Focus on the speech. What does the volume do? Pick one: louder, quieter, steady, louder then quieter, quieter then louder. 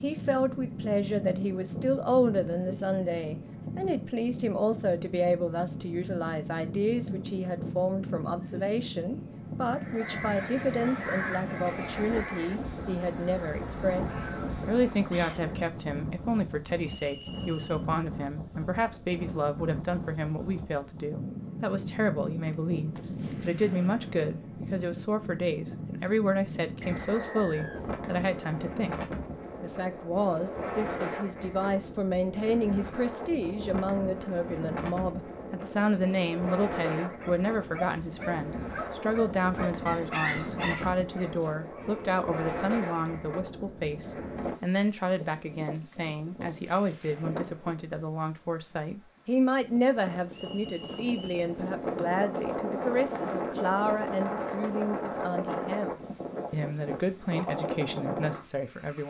steady.